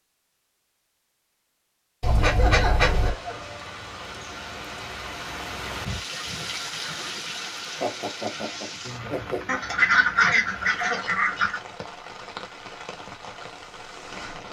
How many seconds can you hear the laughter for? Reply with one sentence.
You can hear the laughter for 3 seconds altogether.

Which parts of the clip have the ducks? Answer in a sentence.
You can hear the ducks from 2.0 to 3.1 s and from 9.4 to 11.6 s.